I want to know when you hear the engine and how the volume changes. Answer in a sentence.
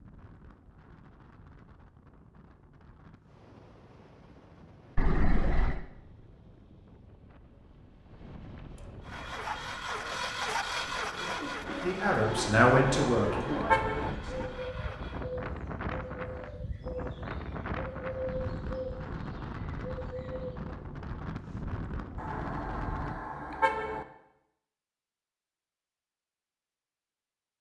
You can hear the engine from 9.0 to 15.2 s, getting quieter.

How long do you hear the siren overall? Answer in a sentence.
You can't hear the siren here.